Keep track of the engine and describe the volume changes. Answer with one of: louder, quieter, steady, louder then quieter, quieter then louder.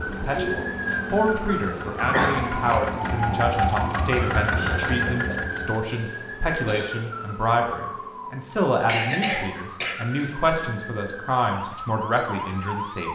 louder.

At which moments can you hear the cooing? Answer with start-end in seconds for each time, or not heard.
0.0-3.1.